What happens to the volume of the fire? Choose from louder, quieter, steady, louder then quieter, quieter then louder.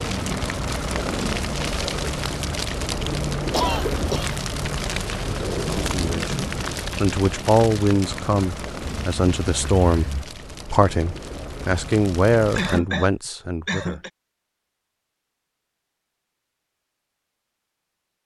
quieter.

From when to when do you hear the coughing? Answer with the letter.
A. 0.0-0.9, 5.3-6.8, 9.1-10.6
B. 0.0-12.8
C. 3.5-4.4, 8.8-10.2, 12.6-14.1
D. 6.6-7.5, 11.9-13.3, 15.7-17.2
C.